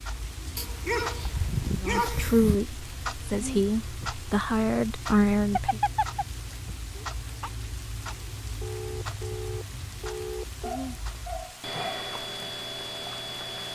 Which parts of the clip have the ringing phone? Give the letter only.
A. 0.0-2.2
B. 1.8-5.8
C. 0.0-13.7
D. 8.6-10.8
D.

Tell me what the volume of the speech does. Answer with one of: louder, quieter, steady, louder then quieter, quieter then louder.
quieter then louder.